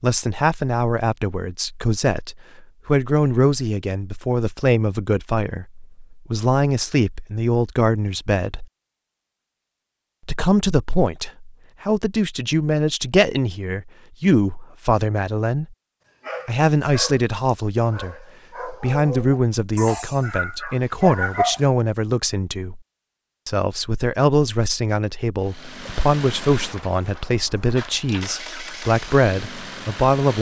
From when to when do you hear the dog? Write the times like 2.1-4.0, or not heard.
16.2-21.6.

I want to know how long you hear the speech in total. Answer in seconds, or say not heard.
27 s.